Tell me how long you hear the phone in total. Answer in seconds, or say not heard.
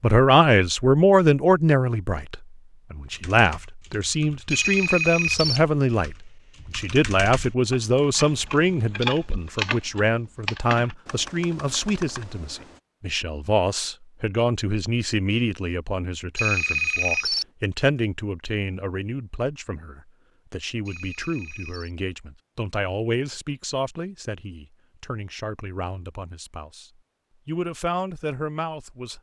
3 s.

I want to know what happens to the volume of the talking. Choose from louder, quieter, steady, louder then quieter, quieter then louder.
quieter.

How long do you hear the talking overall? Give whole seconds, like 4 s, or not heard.
29 s.